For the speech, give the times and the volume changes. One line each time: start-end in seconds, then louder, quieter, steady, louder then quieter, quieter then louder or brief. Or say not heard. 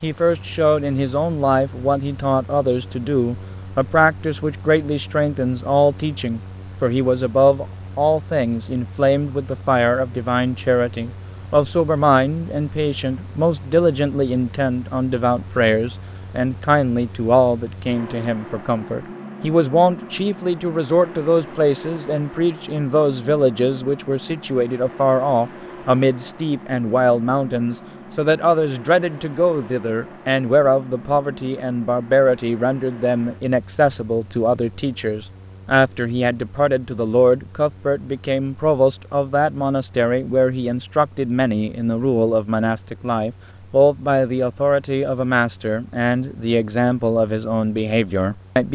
0.0-48.7 steady.